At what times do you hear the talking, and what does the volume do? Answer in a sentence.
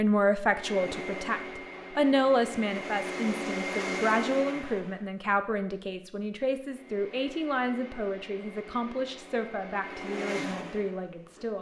The talking can be heard from 0.0 to 11.5 s, getting quieter.